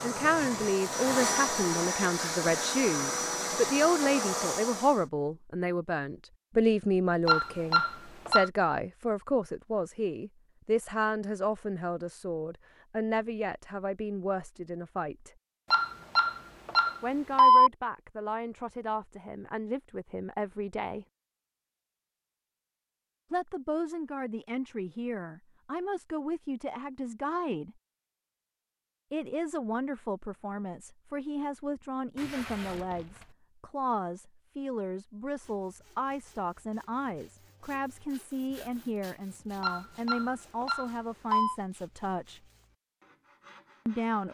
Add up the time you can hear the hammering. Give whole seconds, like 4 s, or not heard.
not heard.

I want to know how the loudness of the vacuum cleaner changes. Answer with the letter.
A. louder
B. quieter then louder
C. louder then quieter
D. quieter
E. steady
E.